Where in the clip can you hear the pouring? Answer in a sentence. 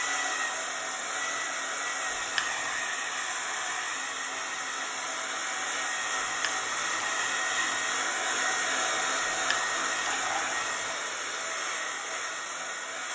The pouring can be heard from 2.1 to 2.9 s, from 6.4 to 7.3 s and from 9.4 to 10.9 s.